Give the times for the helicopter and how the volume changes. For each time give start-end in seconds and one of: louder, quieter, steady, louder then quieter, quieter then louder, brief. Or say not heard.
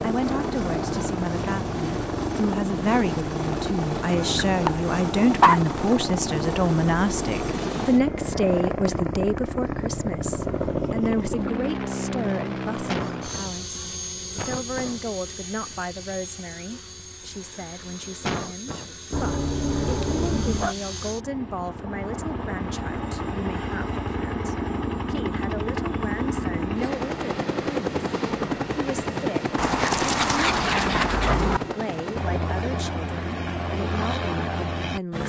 0.0-35.2 quieter then louder.